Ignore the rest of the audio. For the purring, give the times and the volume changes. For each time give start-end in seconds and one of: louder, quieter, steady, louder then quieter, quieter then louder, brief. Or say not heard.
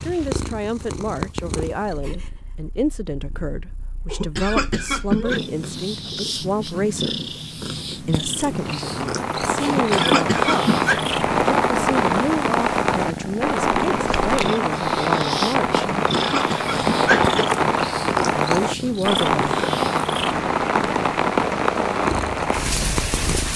0.0-23.5 louder.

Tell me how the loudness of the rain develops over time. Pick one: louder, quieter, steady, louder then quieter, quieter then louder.
steady.